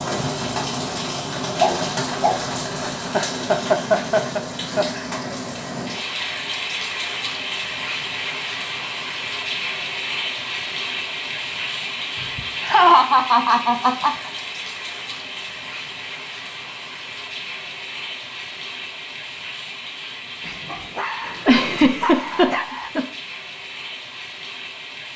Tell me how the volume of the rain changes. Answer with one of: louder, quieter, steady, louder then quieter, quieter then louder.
quieter.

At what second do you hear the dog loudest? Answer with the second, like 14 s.
2 s.